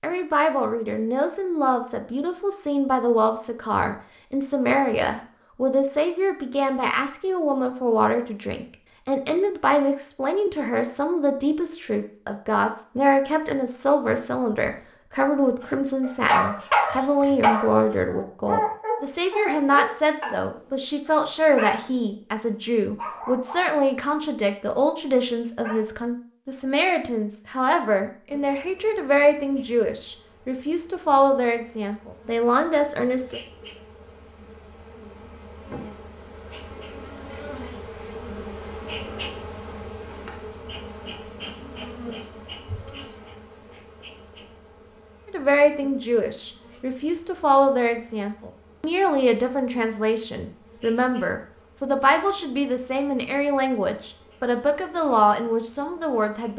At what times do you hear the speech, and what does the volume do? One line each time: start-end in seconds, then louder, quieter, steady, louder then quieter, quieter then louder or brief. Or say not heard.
0.0-33.4 steady
45.2-56.5 steady.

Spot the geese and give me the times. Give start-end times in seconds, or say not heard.
not heard.